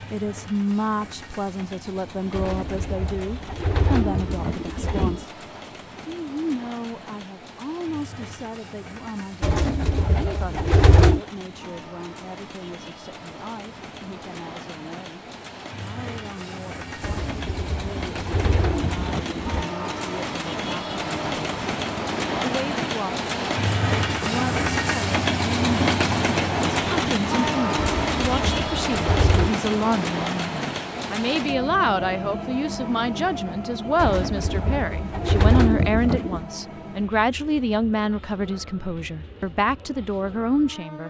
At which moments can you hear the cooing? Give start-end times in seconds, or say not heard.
2.3-5.2, 9.4-11.2, 17.0-19.6, 27.8-29.6, 34.0-36.5.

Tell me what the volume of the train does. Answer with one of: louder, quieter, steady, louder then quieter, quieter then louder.
louder then quieter.